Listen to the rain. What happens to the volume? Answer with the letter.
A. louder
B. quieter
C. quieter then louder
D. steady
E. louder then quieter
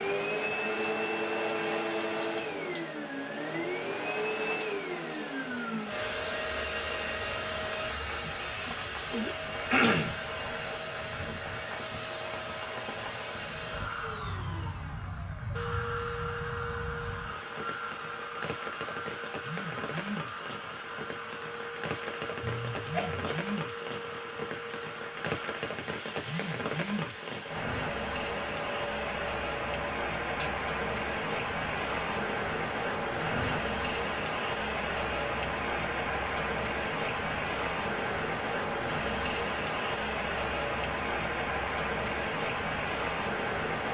A.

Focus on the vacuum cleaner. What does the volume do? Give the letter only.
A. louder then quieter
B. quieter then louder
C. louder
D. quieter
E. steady
D.